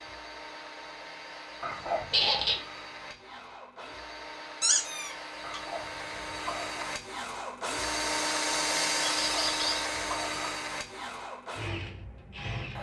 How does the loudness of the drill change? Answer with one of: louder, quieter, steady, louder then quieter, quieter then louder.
louder then quieter.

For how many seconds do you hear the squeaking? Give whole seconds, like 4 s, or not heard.
2 s.